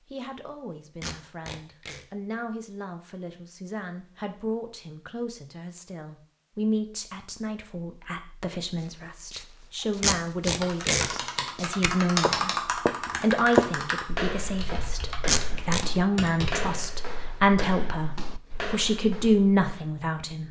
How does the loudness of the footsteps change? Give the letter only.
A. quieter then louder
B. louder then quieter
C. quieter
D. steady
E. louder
B.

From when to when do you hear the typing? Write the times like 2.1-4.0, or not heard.
10.6-16.7.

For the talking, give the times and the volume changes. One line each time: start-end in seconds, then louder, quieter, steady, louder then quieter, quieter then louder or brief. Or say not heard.
0.1-20.4 louder.